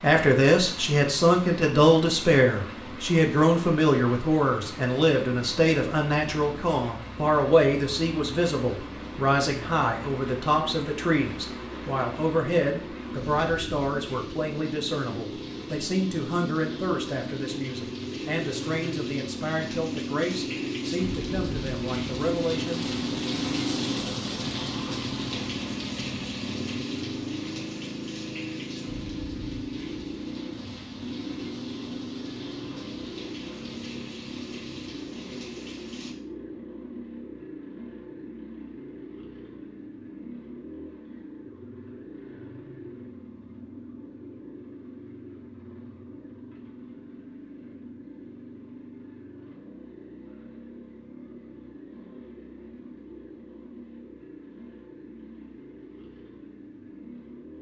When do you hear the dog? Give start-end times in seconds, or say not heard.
not heard.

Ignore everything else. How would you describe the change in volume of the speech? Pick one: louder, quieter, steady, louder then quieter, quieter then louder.
quieter.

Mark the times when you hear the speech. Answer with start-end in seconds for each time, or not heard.
0.0-22.9.